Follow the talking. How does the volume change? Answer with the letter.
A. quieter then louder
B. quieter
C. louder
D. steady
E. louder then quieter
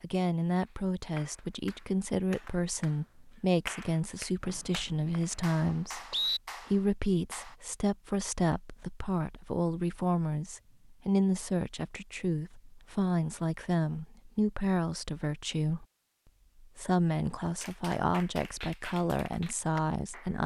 D.